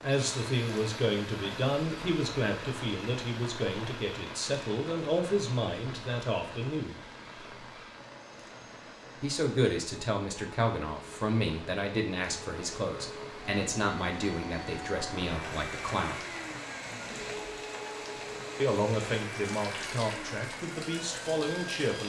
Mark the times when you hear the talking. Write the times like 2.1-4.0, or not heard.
0.0-7.0, 9.2-16.2, 18.6-22.0.